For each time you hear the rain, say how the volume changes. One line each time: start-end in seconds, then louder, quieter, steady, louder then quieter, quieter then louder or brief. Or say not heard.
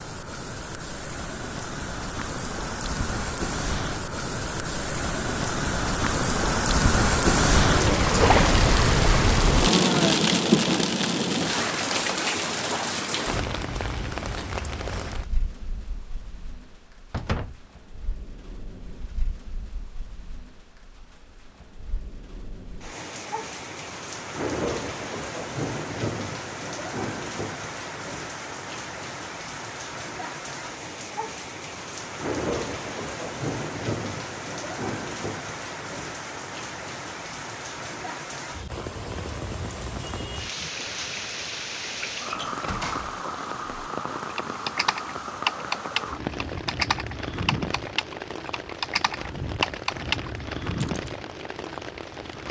0.0-52.4 quieter.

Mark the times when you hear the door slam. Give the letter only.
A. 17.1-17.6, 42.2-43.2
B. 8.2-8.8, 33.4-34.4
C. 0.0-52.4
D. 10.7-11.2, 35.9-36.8
A.